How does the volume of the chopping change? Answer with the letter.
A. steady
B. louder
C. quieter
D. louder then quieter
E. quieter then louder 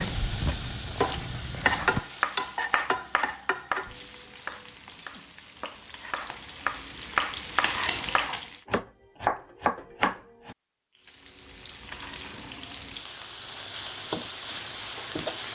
E.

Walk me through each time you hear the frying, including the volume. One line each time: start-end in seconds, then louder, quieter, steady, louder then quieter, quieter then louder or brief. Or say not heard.
0.0-8.6 quieter then louder
10.9-15.5 louder.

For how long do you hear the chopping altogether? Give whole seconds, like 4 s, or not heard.
9 s.